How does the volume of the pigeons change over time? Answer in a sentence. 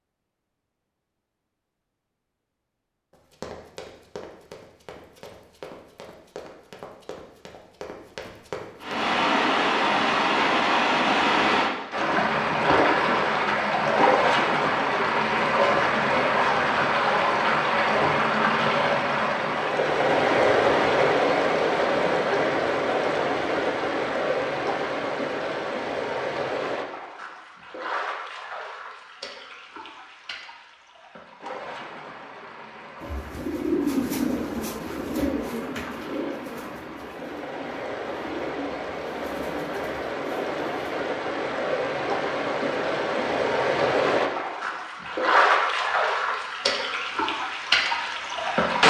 The volume of the pigeons goes down.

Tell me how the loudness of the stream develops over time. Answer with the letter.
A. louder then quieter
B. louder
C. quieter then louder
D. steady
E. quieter
C.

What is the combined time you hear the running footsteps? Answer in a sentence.
You can hear the running footsteps for 6 seconds altogether.